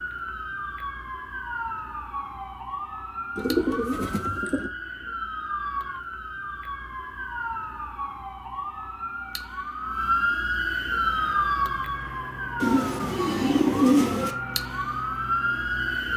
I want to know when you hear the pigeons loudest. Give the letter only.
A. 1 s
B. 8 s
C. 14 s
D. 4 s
C.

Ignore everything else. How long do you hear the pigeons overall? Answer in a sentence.
The pigeons can be heard for 3 seconds in total.